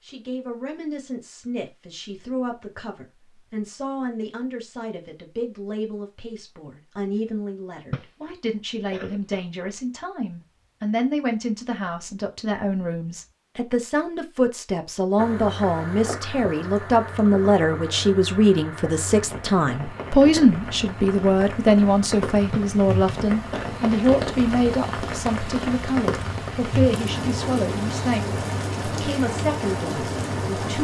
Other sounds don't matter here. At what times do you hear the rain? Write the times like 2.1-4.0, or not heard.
15.2-30.7.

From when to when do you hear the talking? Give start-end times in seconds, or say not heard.
0.0-30.7.